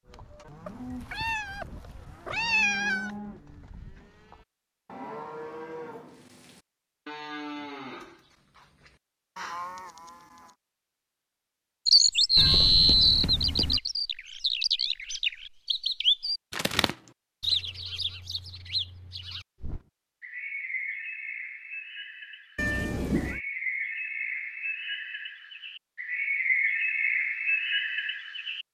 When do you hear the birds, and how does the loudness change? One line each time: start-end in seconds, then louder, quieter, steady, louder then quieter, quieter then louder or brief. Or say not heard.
11.8-28.6 quieter then louder.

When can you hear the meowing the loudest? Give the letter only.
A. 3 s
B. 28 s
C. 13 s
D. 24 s
A.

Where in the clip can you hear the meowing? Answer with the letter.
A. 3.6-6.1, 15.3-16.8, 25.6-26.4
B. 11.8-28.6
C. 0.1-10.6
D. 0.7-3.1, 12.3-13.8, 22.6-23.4
D.